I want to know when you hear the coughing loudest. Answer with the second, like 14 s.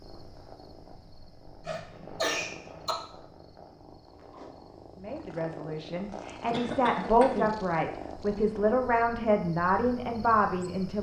2 s.